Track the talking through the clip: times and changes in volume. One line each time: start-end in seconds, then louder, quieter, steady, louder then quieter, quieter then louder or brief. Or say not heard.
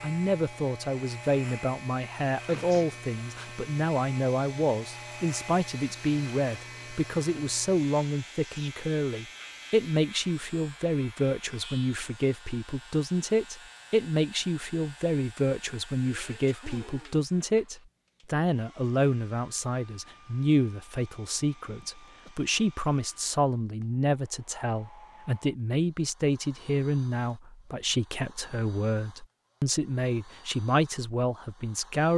0.0-32.1 steady.